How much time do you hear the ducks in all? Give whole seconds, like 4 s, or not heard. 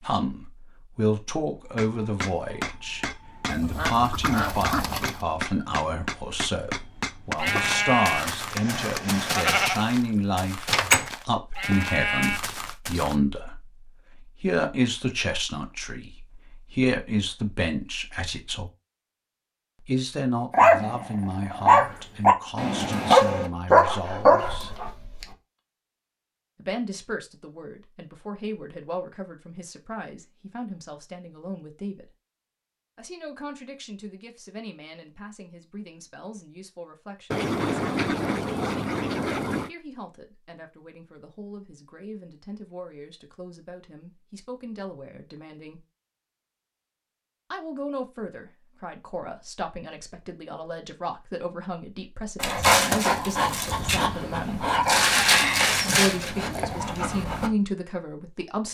4 s.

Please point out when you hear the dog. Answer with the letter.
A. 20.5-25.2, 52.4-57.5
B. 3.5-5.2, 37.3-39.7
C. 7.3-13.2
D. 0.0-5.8
A.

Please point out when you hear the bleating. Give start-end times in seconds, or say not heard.
7.3-13.2.